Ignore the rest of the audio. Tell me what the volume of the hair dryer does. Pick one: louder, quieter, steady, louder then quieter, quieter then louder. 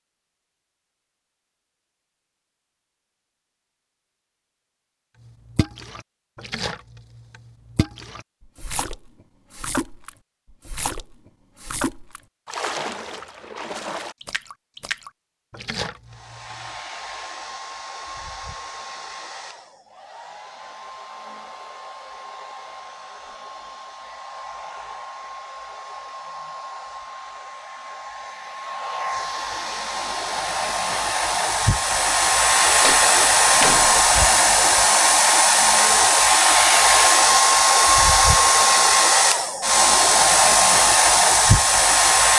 louder.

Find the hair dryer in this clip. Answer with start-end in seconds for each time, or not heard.
16.1-42.3.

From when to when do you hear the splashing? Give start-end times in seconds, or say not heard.
5.2-16.6.